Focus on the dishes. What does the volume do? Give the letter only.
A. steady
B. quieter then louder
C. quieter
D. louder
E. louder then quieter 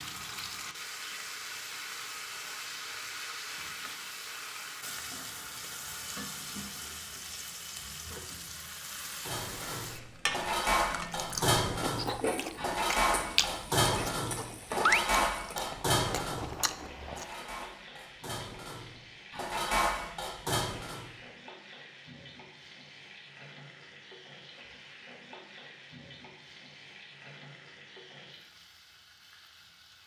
B.